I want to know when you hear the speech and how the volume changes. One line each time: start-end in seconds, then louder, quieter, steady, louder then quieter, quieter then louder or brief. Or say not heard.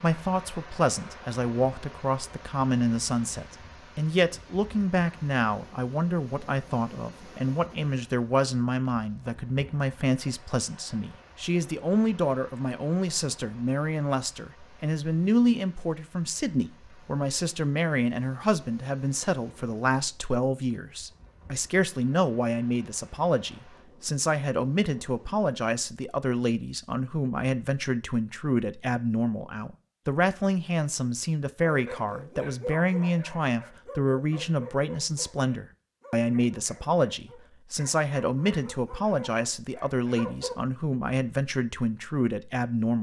0.0-42.9 steady.